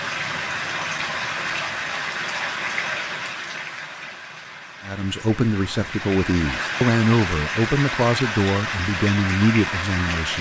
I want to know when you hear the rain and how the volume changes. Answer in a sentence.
You can hear the rain from 0.0 to 10.3 s, getting quieter then louder.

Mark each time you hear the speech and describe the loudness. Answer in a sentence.
You can hear the speech from 4.8 to 10.3 s, at a steady volume.